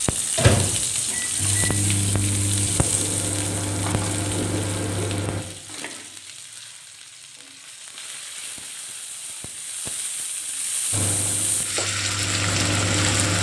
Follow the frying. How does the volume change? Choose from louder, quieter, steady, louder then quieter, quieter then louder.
quieter then louder.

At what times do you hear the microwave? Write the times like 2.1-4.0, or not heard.
0.0-5.5, 10.9-13.3.